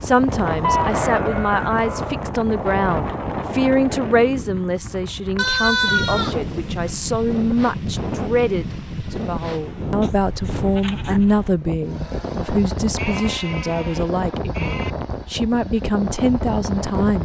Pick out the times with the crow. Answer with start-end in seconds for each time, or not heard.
not heard.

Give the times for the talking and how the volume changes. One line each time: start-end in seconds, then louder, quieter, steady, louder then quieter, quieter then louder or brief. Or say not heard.
0.0-17.1 steady.